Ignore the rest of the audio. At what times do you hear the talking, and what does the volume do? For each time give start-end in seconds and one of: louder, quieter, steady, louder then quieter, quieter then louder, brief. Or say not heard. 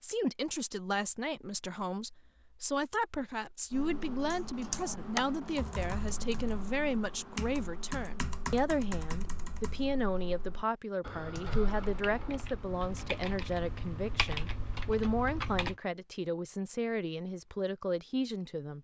0.0-18.7 steady.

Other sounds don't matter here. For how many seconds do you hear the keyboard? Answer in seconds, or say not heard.
12 s.